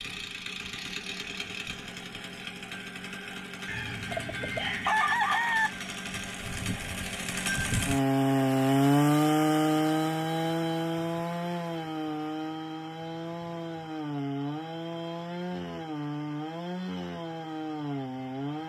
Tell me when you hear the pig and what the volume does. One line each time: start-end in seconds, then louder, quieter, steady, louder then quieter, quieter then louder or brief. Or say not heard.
not heard.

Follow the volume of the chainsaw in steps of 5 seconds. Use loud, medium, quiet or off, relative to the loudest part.
quiet, loud, medium, medium.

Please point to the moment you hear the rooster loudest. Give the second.
5 s.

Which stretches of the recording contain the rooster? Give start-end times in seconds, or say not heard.
3.6-5.7.